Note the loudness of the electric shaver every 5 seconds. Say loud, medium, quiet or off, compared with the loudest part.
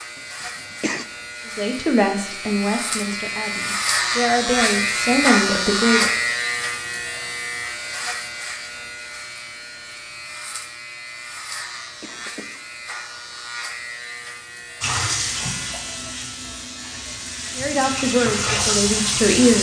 loud, loud, medium, medium.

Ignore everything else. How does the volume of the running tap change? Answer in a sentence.
The volume of the running tap goes down, then up.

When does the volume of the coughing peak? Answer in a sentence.
The loudest moment of the coughing is at 1 second.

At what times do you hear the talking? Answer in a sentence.
You can hear the talking from 1.6 to 6.1 s and from 17.6 to 19.5 s.